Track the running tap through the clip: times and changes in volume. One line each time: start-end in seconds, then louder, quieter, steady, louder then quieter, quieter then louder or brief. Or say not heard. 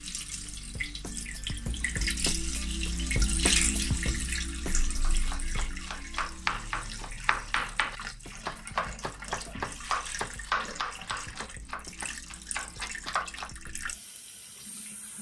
0.0-15.1 quieter.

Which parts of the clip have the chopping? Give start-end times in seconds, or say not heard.
5.0-13.5.